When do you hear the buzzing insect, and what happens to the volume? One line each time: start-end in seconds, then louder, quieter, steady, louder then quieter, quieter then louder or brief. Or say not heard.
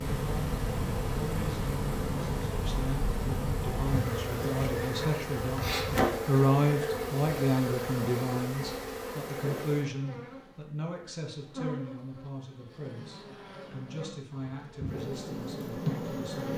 0.0-16.5 quieter then louder.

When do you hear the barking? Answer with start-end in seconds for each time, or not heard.
not heard.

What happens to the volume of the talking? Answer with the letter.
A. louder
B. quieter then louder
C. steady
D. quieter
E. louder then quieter
E.